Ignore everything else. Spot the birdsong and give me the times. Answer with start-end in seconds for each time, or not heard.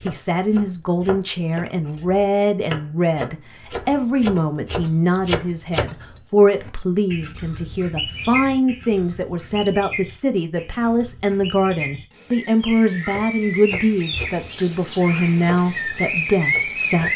6.5-17.1.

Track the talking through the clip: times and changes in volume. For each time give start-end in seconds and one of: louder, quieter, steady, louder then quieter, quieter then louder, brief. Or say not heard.
0.1-17.1 steady.